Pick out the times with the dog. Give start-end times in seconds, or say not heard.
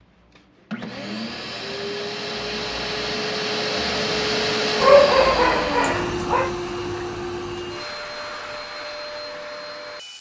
4.8-6.5.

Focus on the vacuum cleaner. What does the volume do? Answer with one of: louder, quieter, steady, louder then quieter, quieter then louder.
louder then quieter.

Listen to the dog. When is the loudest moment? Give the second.
5 s.